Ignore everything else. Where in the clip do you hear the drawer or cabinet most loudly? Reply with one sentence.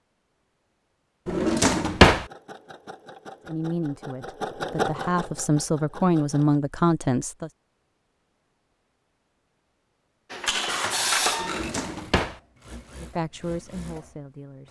The volume of the drawer or cabinet peaks at 2 seconds.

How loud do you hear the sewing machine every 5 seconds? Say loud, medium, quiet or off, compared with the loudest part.
loud, medium, loud.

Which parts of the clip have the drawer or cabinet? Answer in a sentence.
The drawer or cabinet can be heard from 1.2 to 2.2 s and from 11.4 to 12.4 s.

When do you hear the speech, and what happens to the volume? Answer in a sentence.
The speech can be heard from 3.5 to 7.5 s, getting louder; and briefly from 13.0 to 14.6 s.